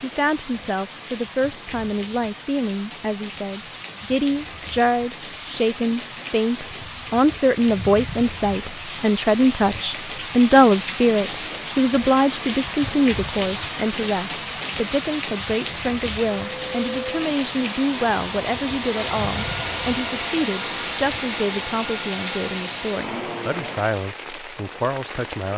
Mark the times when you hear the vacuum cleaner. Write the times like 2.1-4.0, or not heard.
16.5-23.9.